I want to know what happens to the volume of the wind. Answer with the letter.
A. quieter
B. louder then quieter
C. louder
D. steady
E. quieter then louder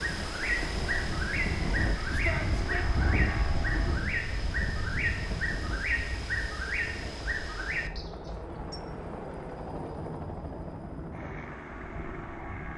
A.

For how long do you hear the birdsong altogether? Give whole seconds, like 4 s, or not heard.
9 s.